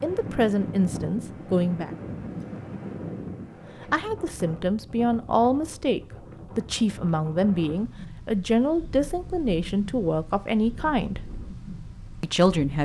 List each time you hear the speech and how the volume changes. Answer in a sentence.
You can hear the speech briefly from 0.0 to 1.9 s; from 3.8 to 11.2 s, at a steady volume; and briefly from 12.2 to 12.8 s.